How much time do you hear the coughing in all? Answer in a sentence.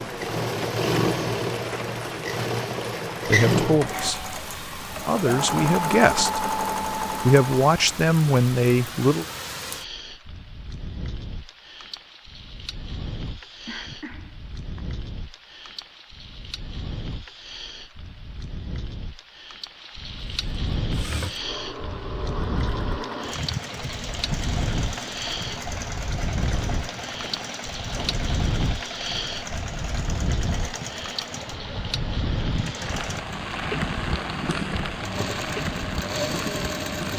The coughing can be heard for 3 seconds in total.